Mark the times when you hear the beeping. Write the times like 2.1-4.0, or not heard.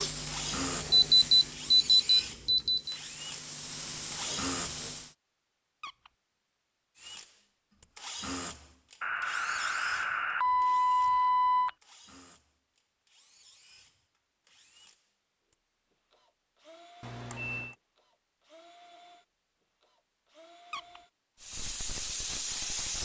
0.9-3.0, 9.0-11.7, 17.0-17.8.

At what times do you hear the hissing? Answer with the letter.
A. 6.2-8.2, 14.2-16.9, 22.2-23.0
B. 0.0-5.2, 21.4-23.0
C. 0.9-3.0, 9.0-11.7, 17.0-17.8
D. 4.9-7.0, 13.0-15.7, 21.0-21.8
B.